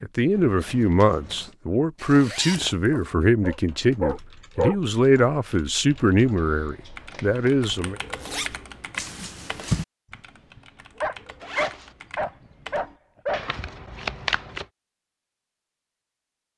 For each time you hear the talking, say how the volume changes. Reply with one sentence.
You can hear the talking from 0.0 to 8.0 s, at a steady volume.